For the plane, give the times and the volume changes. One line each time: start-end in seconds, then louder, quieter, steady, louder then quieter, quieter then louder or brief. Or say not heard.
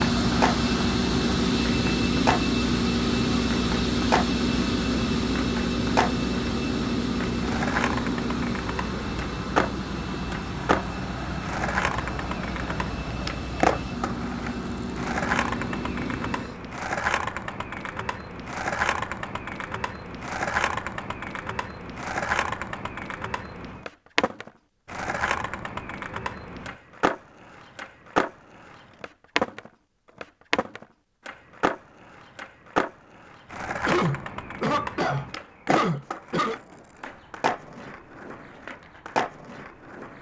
0.0-16.6 quieter.